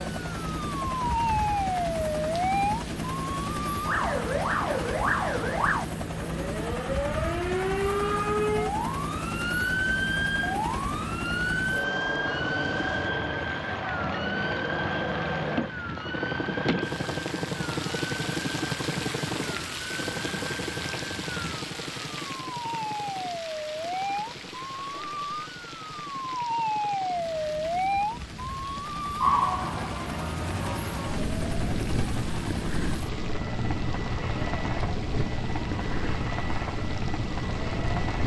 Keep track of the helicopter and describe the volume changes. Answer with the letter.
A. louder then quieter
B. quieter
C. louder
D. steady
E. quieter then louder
E.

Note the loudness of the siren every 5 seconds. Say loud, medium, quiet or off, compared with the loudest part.
loud, loud, loud, medium, medium, loud, medium, medium.